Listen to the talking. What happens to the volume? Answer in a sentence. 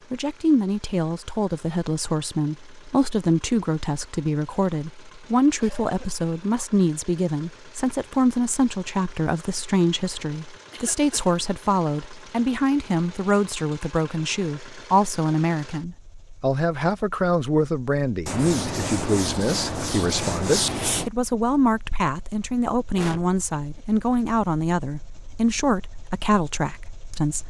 The volume of the talking stays about the same.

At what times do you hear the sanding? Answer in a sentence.
You can hear the sanding from 18.2 to 21.1 s.